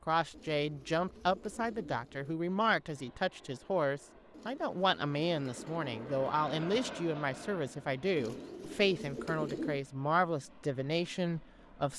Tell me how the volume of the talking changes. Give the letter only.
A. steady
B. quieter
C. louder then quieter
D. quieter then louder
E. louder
A.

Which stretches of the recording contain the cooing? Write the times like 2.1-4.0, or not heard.
0.3-2.4, 4.3-6.1, 8.2-9.8.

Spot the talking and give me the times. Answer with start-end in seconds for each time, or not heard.
0.1-11.9.